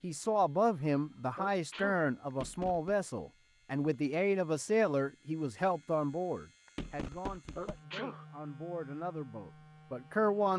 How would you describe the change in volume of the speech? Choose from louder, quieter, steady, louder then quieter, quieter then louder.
quieter.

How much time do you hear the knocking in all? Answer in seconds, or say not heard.
2 s.